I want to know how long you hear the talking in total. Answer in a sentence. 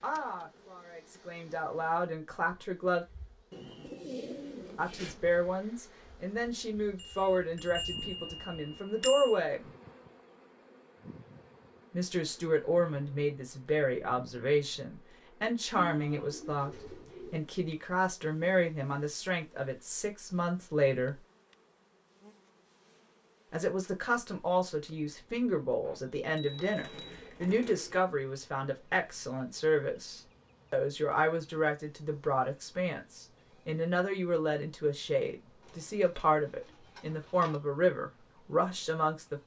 You can hear the talking for 33 seconds altogether.